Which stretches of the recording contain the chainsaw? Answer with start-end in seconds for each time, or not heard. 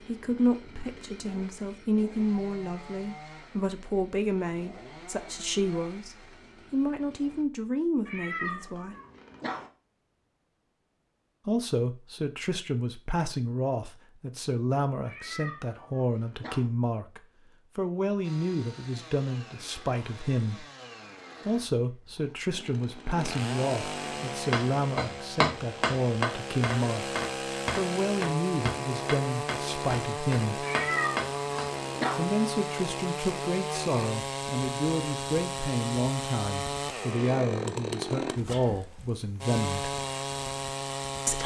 0.0-7.5, 18.2-41.4.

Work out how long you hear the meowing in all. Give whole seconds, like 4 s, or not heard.
5 s.